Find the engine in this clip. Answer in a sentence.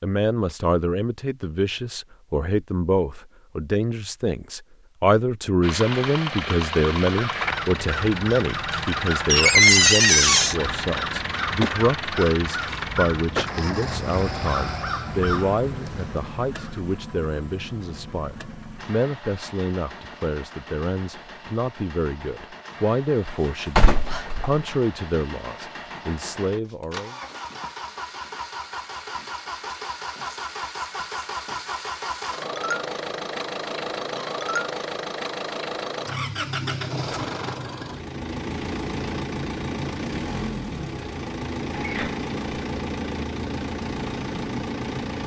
You can hear the engine from 5.6 to 45.2 s.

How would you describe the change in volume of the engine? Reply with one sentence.
The loudness of the engine goes down, then up.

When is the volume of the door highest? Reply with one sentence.
The loudest moment of the door is at 10 seconds.